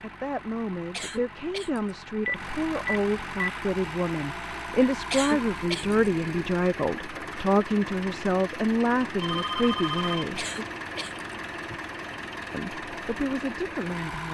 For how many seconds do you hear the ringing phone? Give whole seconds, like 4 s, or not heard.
3 s.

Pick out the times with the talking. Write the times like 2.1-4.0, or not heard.
0.0-10.4, 12.5-14.2.